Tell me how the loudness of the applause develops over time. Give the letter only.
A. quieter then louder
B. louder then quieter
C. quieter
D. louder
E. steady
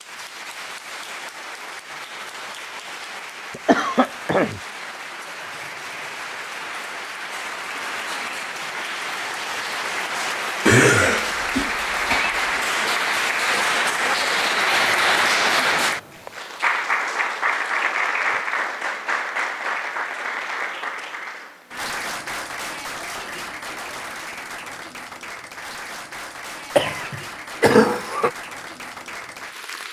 B.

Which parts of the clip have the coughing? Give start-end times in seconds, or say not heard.
3.5-4.6, 10.7-12.4, 26.8-28.3.